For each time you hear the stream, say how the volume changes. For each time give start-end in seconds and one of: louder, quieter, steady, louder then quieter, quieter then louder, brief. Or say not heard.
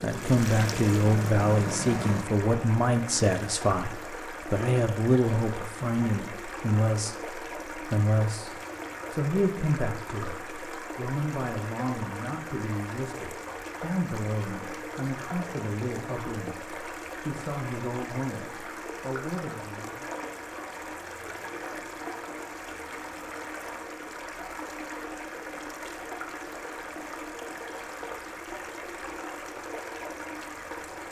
0.0-31.0 steady.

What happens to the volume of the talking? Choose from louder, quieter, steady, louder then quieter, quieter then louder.
quieter.